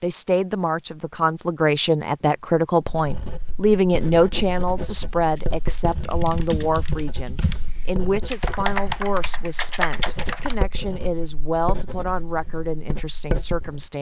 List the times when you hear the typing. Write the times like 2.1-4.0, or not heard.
5.0-10.7.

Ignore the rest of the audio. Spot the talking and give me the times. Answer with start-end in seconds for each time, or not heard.
0.0-13.9.